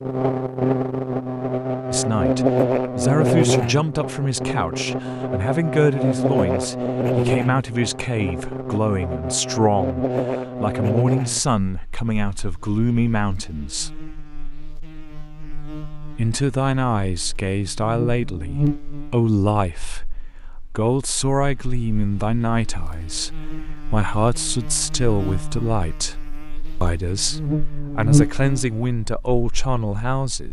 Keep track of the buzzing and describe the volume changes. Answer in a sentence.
The loudness of the buzzing goes down, then up.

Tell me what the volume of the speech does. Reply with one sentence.
The volume of the speech stays about the same.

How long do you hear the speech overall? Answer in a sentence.
The speech can be heard for 25 seconds in total.